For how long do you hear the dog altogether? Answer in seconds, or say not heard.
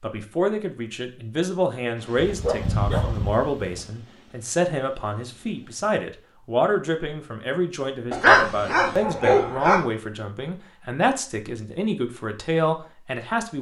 3 s.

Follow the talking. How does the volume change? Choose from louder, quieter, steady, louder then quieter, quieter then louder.
steady.